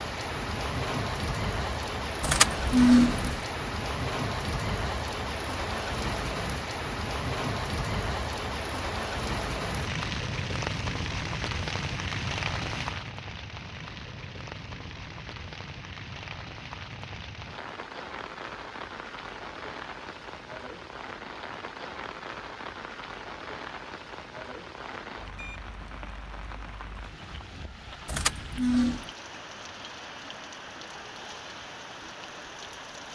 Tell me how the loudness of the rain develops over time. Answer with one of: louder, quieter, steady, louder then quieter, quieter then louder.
quieter.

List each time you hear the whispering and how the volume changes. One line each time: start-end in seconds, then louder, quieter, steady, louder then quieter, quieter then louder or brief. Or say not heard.
not heard.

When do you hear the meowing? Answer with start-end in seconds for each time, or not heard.
not heard.